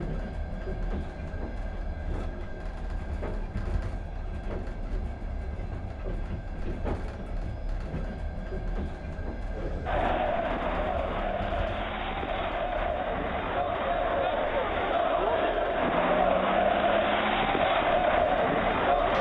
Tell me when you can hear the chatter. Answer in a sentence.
The chatter can be heard from 9.5 to 19.1 s.